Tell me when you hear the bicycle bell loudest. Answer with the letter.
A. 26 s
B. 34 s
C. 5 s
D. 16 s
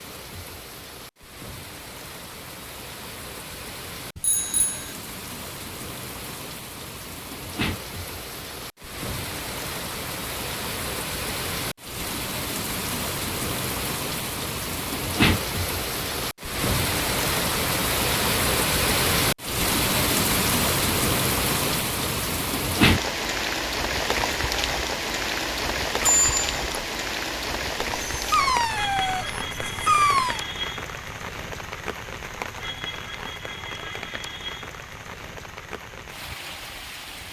A.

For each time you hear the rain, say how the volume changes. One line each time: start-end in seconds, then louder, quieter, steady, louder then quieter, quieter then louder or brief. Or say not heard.
0.0-37.2 louder then quieter.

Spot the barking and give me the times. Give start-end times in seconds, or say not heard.
28.1-30.4.